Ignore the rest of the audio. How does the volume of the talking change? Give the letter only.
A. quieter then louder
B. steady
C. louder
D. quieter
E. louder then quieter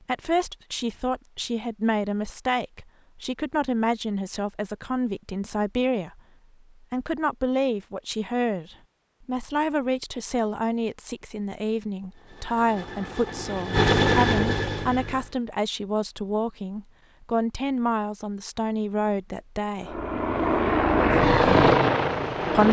B.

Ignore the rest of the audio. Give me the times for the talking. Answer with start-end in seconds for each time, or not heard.
0.1-6.2, 6.9-20.1.